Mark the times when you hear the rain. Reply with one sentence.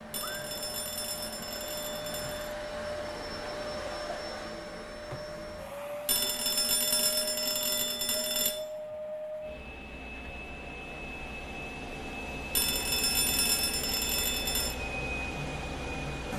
The rain can't be heard in this clip.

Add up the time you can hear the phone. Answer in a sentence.
The phone can be heard for 7 seconds in total.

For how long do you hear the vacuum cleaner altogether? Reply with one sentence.
You can hear the vacuum cleaner for 16 seconds altogether.